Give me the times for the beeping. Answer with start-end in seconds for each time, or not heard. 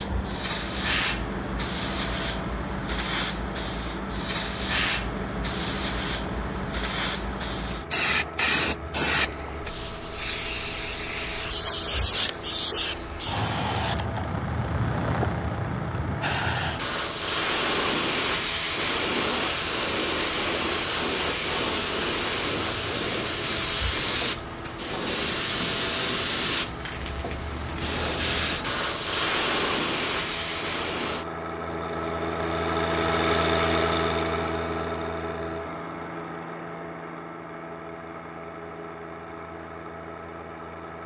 not heard.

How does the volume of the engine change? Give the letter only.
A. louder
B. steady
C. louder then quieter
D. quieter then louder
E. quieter
A.